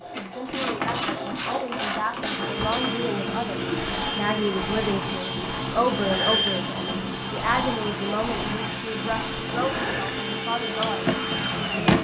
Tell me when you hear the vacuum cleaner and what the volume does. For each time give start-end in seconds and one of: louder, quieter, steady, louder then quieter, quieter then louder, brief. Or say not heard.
2.2-11.9 steady.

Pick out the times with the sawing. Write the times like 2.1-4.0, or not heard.
0.0-2.2.